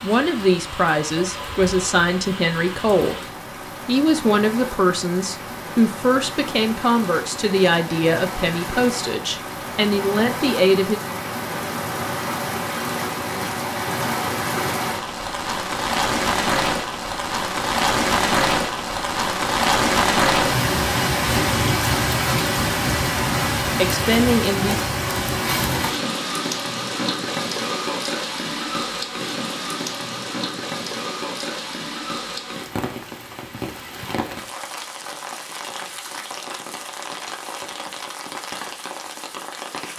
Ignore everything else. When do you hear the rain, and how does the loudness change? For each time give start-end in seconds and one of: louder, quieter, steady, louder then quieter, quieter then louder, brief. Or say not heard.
0.0-39.9 louder then quieter.